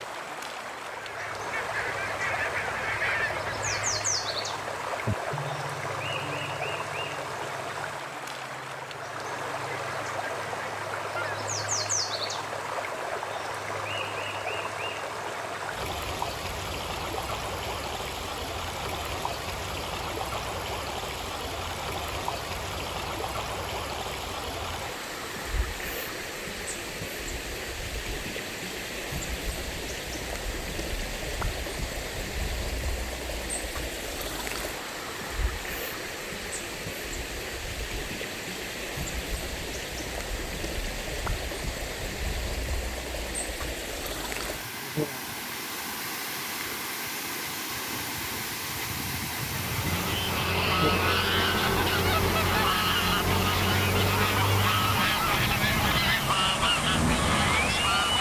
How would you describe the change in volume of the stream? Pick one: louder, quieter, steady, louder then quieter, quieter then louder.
steady.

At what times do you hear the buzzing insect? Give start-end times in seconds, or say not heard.
not heard.